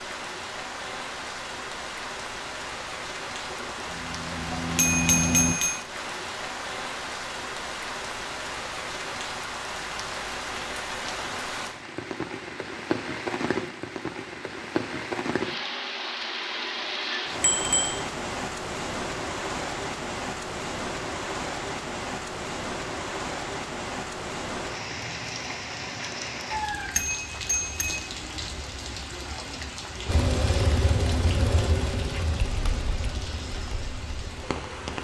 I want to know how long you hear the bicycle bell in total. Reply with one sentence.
The bicycle bell can be heard for 3 seconds in total.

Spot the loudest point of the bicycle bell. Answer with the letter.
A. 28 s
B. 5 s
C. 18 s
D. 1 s
B.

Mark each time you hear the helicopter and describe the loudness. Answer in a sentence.
You can hear the helicopter briefly from 3.4 to 5.5 s; and from 30.1 to 34.9 s, getting quieter.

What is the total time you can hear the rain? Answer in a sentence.
The rain can be heard for 35 seconds in total.